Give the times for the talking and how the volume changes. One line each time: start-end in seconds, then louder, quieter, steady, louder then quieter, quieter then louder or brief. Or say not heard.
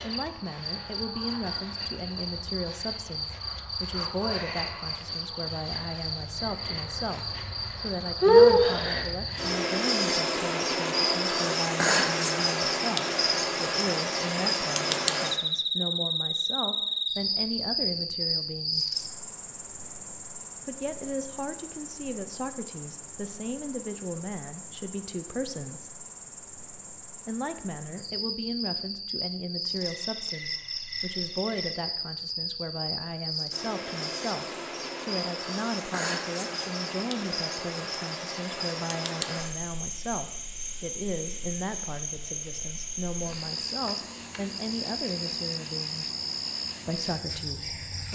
0.0-18.9 steady
20.6-25.9 steady
27.2-46.0 steady
46.9-48.0 brief.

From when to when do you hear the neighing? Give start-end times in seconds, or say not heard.
not heard.